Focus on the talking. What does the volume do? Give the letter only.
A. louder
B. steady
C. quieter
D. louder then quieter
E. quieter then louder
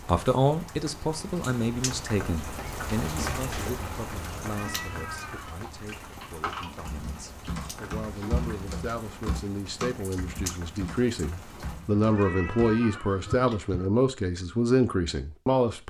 E.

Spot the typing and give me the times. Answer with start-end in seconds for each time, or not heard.
6.0-12.8.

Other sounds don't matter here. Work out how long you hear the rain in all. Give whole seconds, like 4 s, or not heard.
12 s.